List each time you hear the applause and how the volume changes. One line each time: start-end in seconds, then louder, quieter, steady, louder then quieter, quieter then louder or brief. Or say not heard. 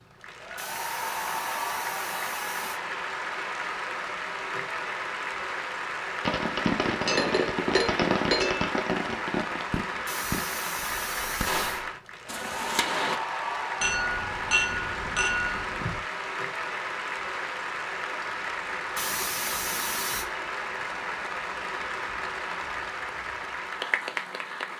0.0-24.7 steady.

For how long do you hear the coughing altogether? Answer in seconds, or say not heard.
5 s.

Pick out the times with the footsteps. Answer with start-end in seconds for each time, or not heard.
not heard.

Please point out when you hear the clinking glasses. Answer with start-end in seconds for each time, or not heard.
6.8-8.7, 13.8-16.0.